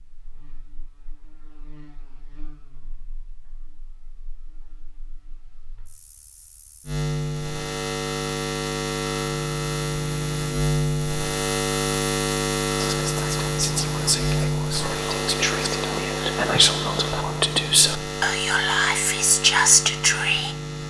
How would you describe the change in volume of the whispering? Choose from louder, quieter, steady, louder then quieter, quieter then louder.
louder.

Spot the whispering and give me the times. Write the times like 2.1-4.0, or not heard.
12.8-20.6.